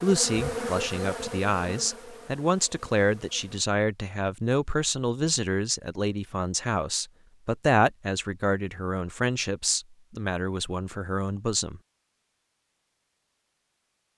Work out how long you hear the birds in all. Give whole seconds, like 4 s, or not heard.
not heard.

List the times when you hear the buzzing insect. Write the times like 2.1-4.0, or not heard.
0.0-3.6.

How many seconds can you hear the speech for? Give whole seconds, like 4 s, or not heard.
12 s.